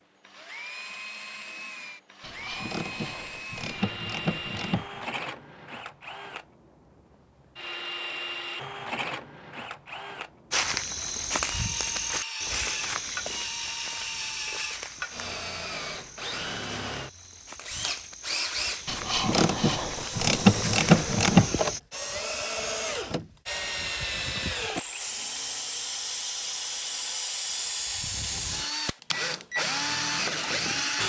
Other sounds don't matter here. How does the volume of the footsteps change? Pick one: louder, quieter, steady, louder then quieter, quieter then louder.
quieter then louder.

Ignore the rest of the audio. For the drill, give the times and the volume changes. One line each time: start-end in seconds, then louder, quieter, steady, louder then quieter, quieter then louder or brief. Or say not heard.
0.0-31.0 louder.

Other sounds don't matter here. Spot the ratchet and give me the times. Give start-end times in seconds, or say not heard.
2.2-5.1, 18.9-21.5.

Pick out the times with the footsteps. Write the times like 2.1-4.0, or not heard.
10.5-21.8.